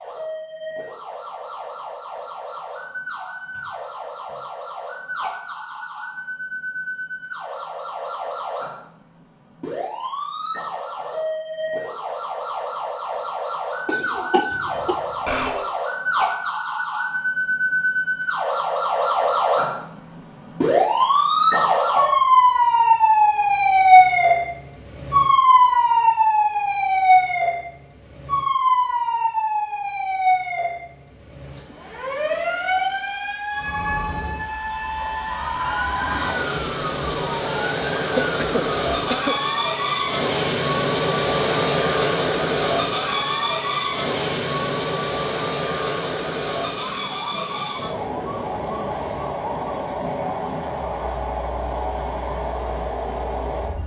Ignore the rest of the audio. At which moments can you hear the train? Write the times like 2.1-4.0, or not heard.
33.5-53.8.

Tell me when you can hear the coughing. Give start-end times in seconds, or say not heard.
13.8-15.0, 38.2-39.4.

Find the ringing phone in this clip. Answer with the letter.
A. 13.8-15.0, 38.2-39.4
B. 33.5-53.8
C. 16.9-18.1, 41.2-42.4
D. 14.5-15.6
D.